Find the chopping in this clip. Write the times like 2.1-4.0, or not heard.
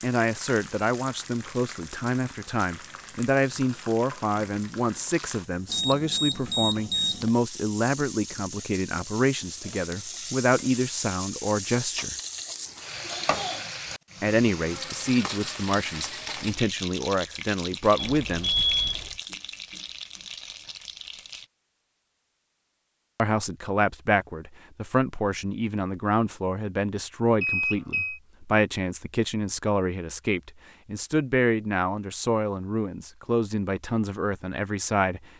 not heard.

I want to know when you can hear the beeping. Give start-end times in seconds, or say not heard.
5.7-7.3, 17.9-19.1, 27.4-28.2.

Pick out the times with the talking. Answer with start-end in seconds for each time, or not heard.
0.0-12.2, 14.2-18.5, 23.1-35.2.